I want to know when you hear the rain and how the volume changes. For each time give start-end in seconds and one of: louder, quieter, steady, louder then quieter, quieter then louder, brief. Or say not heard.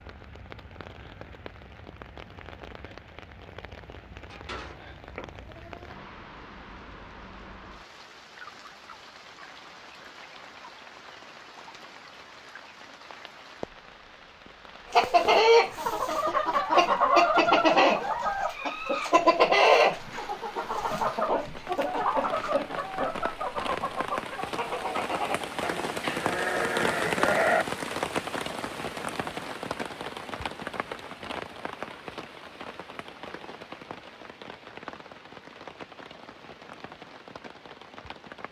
0.0-38.4 louder then quieter.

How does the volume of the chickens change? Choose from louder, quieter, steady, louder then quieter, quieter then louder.
quieter.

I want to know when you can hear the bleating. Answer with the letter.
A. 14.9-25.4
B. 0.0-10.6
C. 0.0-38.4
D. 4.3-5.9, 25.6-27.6
D.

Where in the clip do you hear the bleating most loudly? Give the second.
27 s.